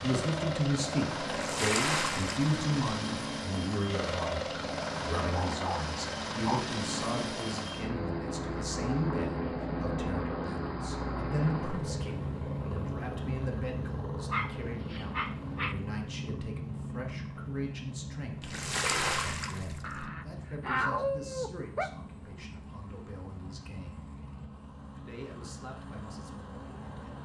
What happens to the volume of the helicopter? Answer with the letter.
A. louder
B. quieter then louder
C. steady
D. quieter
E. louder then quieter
D.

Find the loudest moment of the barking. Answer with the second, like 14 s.
21 s.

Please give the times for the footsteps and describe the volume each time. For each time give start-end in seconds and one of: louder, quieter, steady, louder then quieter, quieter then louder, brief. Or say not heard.
not heard.